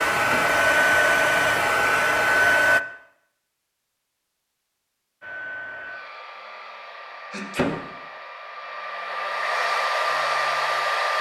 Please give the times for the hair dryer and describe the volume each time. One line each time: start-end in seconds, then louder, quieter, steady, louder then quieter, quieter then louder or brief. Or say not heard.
0.0-2.8 brief
5.2-11.1 louder.